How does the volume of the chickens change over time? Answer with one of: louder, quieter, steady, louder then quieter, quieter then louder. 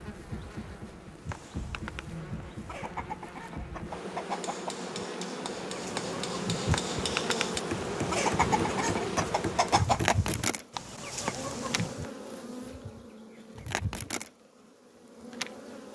louder.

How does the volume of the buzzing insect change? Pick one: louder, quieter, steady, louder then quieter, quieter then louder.
louder then quieter.